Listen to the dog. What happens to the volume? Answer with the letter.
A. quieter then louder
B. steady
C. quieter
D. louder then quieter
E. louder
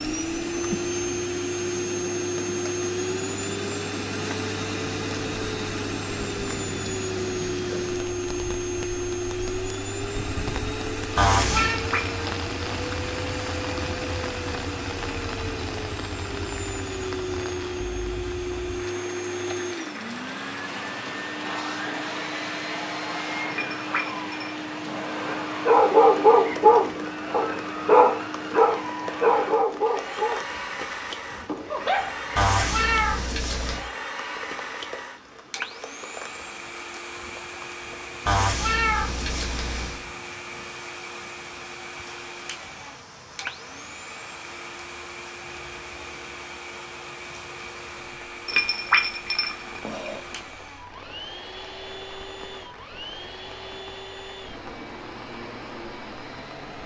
C.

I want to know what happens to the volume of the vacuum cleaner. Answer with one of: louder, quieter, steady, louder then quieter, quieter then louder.
quieter.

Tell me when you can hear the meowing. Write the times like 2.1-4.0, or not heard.
11.2-11.8, 32.4-33.9, 38.2-40.0.